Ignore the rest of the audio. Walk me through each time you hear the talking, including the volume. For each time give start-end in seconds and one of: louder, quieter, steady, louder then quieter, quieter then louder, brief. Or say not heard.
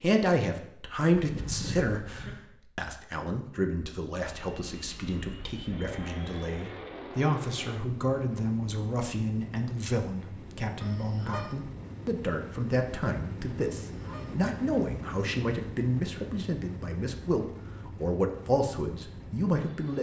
0.0-19.9 steady.